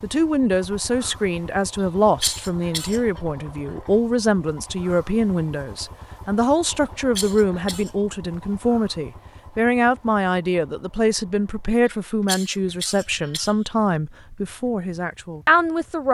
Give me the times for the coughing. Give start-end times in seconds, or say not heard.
2.2-3.0, 7.2-7.9, 11.8-13.6.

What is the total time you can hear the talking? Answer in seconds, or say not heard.
16 s.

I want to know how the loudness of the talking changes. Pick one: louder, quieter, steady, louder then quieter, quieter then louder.
steady.